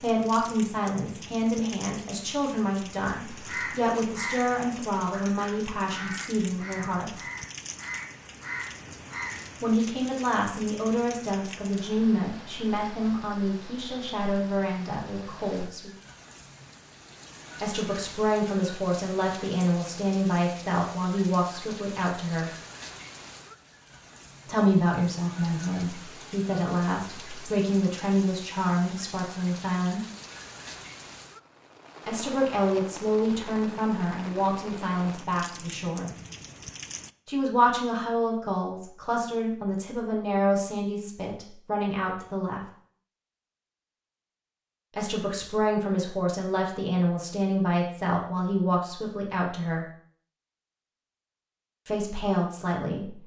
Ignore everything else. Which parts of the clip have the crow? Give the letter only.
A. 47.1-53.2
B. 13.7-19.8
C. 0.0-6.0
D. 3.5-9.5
D.